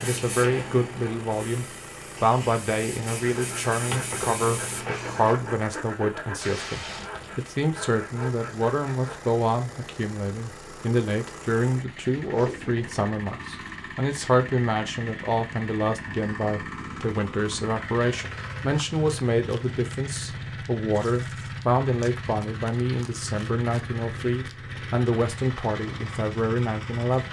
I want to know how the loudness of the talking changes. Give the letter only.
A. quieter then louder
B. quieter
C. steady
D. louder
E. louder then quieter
C.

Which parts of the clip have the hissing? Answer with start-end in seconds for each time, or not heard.
0.0-5.3.